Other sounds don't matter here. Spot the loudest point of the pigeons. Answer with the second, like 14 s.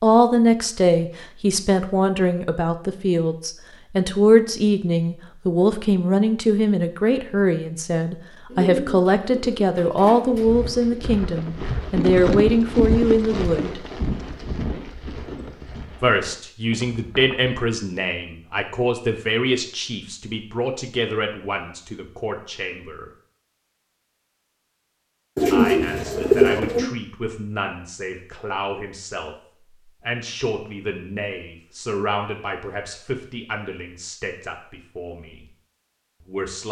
26 s.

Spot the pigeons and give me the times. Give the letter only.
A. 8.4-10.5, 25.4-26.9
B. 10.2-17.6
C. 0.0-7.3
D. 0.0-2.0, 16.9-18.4
A.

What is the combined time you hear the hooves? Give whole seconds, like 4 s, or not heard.
7 s.